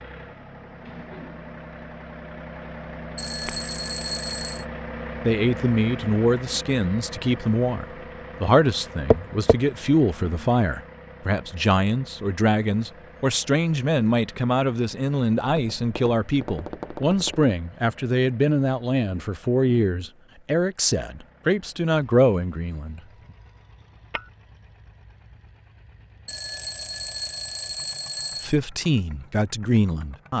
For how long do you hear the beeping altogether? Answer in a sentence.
The beeping can be heard for 4 seconds in total.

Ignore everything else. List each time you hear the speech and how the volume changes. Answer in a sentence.
The speech can be heard from 5.2 to 23.0 s, at a steady volume; and briefly from 28.4 to 30.3 s.